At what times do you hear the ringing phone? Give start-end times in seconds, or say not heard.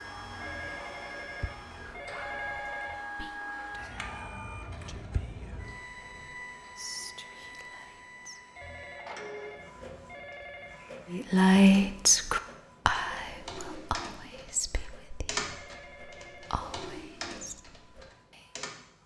0.4-3.0, 8.6-10.9, 15.3-16.6.